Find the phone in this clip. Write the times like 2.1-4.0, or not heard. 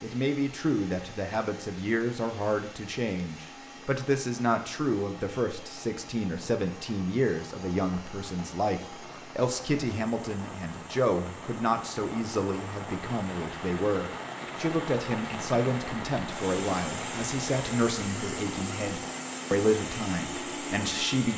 not heard.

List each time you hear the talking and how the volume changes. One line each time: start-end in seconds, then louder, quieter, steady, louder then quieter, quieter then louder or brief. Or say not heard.
0.0-21.3 steady.